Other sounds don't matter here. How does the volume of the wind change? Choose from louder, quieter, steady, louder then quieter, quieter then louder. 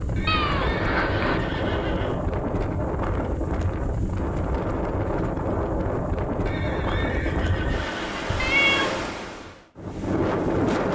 steady.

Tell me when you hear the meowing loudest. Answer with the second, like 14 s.
9 s.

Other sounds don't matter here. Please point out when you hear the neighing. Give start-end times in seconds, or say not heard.
0.1-2.1, 6.5-8.4.